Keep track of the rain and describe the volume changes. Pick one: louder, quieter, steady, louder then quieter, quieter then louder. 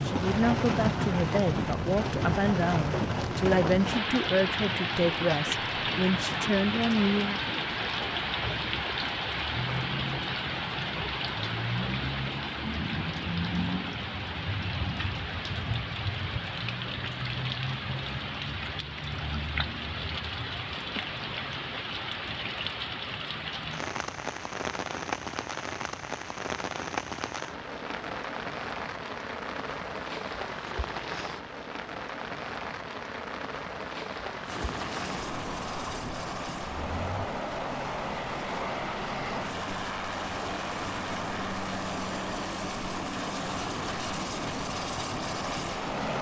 quieter.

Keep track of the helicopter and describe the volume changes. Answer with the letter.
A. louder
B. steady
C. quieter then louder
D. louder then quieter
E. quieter
B.